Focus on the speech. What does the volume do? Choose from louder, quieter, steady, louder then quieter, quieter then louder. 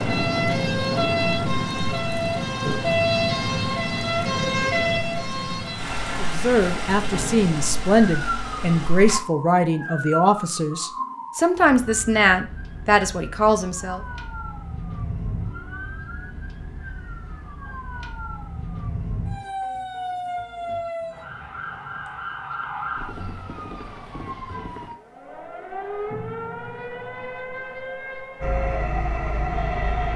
steady.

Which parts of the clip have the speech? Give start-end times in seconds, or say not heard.
6.2-14.0.